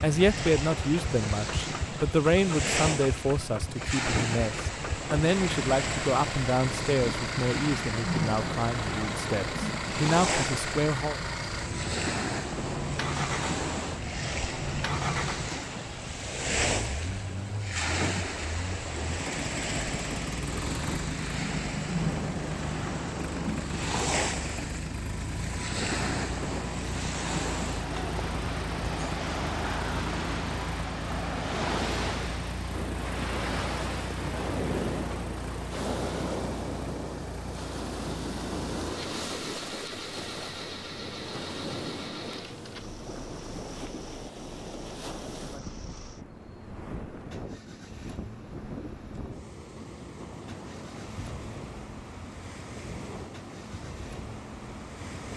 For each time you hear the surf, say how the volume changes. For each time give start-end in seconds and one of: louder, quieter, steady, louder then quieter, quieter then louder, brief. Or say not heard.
0.0-55.3 quieter.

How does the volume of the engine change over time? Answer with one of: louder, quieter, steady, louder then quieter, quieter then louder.
quieter.